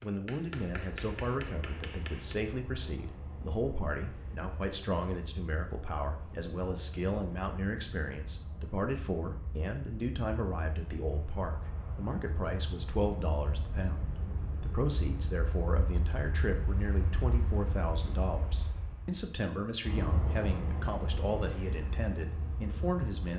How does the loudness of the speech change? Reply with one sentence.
The loudness of the speech stays about the same.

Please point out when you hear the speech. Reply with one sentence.
The speech can be heard from 0.0 to 23.3 s.